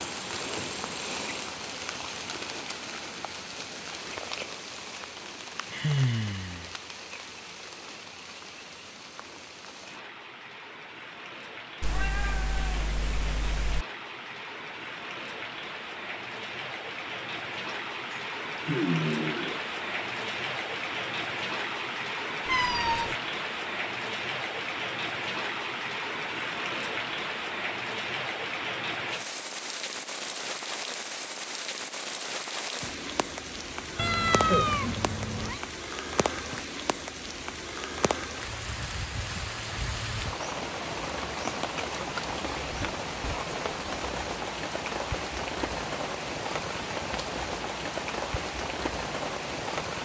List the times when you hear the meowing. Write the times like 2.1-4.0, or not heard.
11.8-13.8, 22.4-23.1, 34.0-35.6.